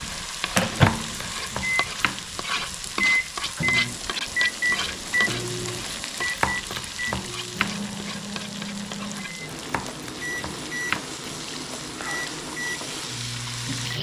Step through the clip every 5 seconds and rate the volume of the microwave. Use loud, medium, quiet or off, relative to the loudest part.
loud, medium, medium.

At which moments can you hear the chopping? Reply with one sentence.
You can hear the chopping from 0.8 to 2.2 s, from 6.2 to 7.7 s and from 9.7 to 11.1 s.